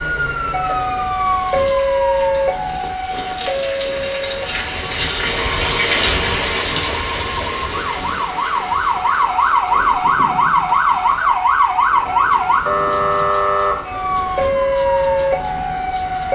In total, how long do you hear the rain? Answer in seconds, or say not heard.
16 s.